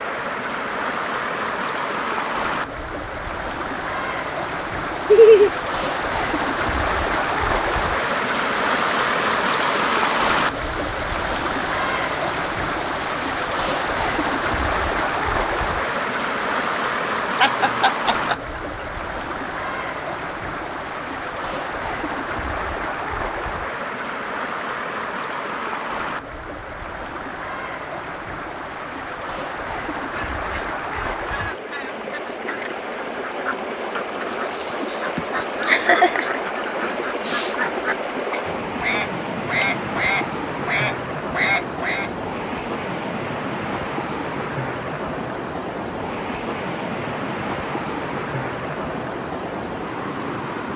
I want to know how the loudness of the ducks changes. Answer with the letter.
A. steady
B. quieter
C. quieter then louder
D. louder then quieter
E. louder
E.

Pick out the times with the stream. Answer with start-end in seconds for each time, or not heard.
0.0-50.7.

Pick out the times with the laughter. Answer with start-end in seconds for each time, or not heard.
5.0-5.5, 17.4-18.4, 35.1-36.4.